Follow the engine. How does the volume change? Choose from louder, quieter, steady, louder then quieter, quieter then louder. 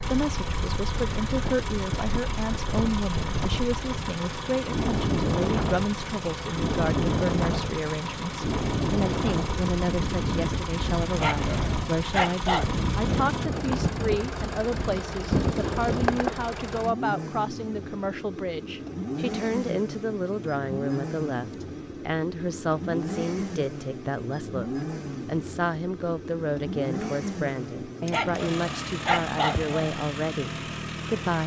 steady.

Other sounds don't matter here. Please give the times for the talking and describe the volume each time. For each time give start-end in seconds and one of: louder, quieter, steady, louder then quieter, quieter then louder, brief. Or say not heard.
0.0-31.4 steady.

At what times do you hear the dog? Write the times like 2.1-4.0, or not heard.
11.2-12.7, 28.1-29.9.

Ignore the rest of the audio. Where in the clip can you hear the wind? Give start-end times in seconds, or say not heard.
0.0-16.4.